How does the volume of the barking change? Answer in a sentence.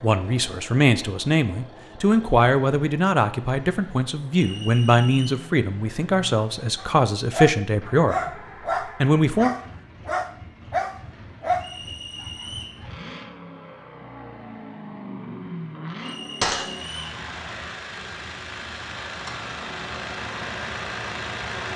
The volume of the barking stays about the same.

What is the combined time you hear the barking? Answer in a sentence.
The barking can be heard for 6 seconds in total.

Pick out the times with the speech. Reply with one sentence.
The speech can be heard from 0.0 to 9.5 s.